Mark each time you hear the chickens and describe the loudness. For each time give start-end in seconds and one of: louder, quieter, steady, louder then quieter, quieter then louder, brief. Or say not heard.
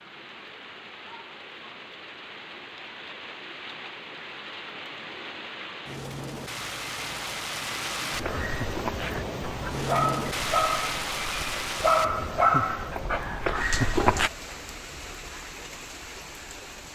not heard.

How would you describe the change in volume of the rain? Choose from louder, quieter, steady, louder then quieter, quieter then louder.
louder then quieter.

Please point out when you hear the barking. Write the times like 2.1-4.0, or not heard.
8.1-14.3.